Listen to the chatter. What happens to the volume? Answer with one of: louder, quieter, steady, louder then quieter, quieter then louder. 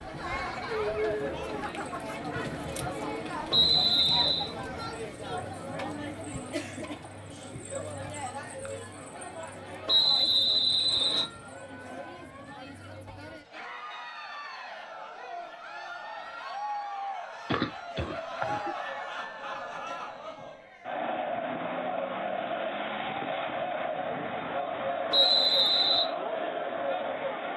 quieter then louder.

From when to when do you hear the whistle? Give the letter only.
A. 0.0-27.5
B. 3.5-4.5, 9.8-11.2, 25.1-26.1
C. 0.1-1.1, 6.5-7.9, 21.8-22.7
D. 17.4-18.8
B.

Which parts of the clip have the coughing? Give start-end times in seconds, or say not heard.
17.4-18.8.